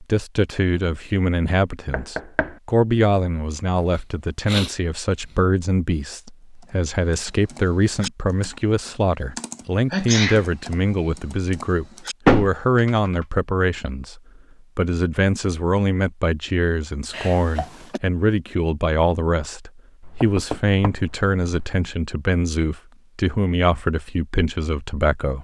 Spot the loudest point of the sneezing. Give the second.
10 s.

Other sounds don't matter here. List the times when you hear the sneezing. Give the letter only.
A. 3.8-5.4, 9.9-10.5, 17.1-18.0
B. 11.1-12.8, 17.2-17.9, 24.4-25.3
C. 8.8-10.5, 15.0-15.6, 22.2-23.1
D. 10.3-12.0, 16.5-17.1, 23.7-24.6
A.